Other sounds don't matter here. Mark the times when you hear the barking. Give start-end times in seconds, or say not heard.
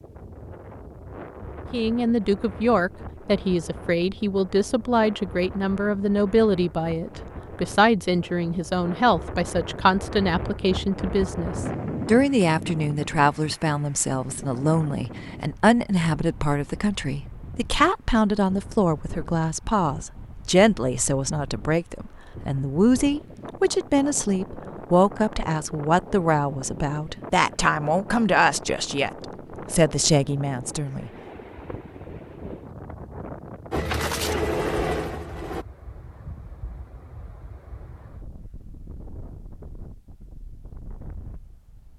not heard.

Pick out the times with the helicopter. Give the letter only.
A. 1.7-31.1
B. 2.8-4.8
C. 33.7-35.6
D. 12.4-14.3
C.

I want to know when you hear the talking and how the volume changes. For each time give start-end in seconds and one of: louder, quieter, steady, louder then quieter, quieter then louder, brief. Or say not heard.
1.7-31.1 steady.